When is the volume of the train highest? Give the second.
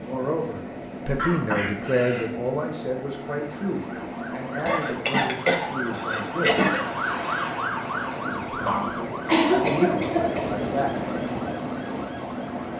11 s.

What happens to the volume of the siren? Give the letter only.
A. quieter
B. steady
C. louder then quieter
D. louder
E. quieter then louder
C.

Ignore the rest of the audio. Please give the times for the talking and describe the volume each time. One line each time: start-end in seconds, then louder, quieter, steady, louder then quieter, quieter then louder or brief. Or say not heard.
0.0-6.5 quieter
8.2-10.9 brief.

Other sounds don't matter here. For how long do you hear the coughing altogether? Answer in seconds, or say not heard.
5 s.